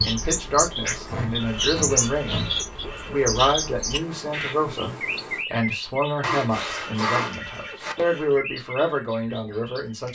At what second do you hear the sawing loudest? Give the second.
7 s.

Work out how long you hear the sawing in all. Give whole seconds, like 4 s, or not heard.
3 s.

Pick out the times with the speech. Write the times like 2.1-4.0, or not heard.
0.0-10.1.